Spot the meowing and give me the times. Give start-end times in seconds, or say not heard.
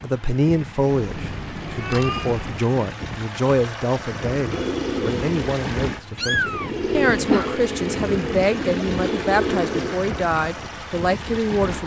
0.8-2.6, 6.2-7.5.